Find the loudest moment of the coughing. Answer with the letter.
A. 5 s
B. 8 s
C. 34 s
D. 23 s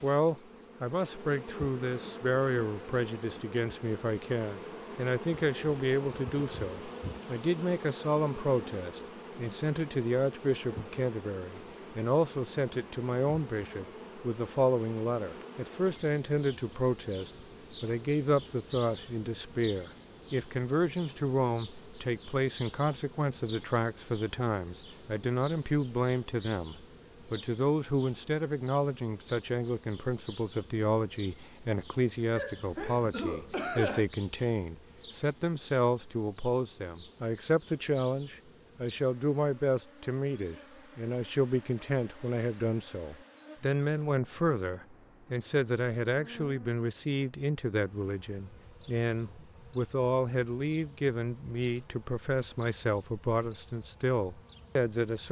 C.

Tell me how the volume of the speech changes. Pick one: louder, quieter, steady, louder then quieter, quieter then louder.
steady.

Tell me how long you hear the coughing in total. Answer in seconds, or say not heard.
2 s.